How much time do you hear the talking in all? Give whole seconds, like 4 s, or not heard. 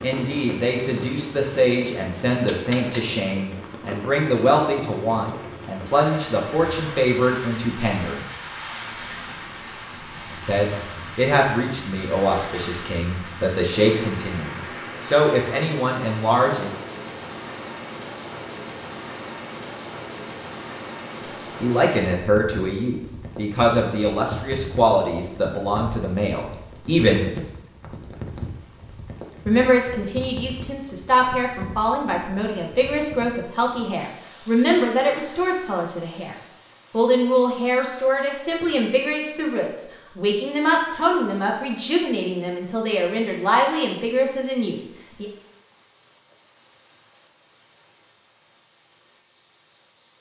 36 s.